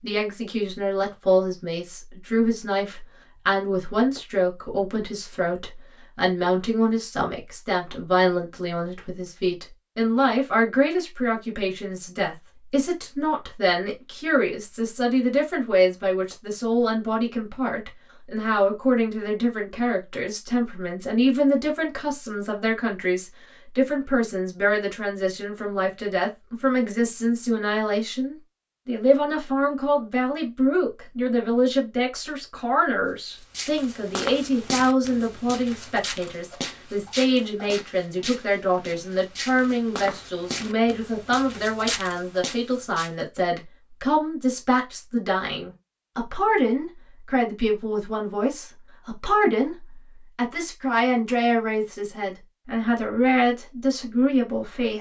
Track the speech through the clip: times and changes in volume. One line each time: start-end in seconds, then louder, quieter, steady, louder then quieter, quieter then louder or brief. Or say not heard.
0.0-54.9 steady.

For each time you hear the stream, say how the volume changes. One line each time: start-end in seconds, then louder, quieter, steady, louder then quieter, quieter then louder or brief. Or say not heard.
not heard.